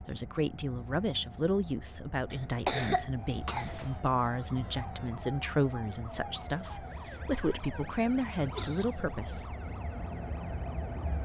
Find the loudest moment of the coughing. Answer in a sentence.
The volume of the coughing peaks at 3 seconds.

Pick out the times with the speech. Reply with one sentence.
The speech can be heard from 0.1 to 9.6 s.